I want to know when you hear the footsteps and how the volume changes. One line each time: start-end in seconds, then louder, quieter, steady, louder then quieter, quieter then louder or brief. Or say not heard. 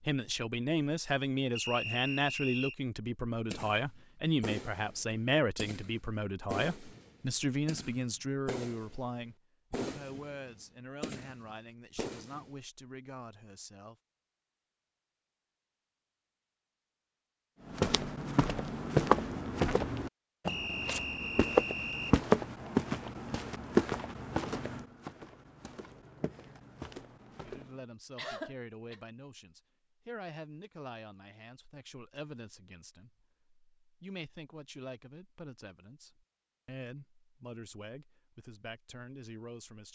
17.6-27.8 quieter.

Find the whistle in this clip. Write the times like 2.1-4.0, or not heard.
1.6-2.8, 20.4-22.1.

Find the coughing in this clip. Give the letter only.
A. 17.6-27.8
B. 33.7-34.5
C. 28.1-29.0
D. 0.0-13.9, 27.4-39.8
C.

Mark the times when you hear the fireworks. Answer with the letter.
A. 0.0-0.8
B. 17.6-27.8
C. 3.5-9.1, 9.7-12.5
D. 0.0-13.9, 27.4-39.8
C.